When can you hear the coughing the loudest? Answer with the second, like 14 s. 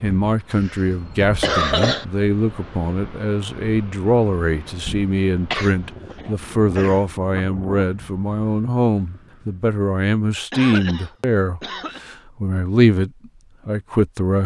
2 s.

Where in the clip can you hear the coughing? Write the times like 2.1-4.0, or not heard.
0.1-2.0, 5.5-7.0, 10.5-12.0.